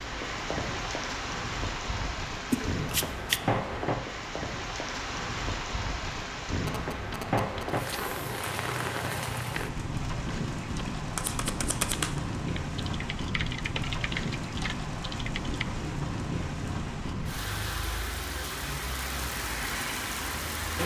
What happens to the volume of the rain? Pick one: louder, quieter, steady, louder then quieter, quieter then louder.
steady.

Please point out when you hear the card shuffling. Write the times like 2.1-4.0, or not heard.
2.5-3.4, 11.2-12.2.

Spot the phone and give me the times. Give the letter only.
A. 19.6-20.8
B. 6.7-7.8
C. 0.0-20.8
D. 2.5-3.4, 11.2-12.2
B.